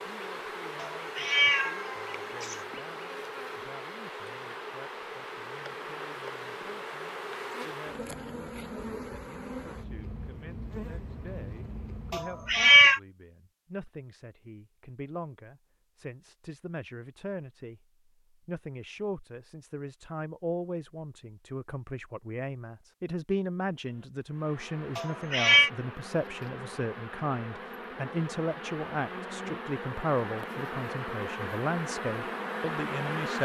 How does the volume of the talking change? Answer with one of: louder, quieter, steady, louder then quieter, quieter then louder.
louder.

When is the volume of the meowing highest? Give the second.
13 s.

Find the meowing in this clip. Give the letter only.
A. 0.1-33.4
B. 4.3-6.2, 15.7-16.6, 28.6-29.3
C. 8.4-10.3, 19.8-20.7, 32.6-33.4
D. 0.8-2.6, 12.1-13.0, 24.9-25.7
D.